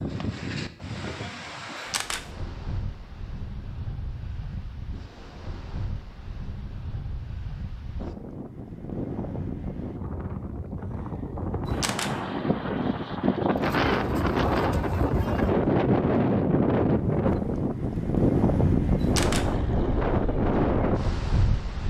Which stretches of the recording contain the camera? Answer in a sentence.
The camera can be heard from 1.8 to 2.2 s, from 11.7 to 12.2 s and from 19.0 to 19.5 s.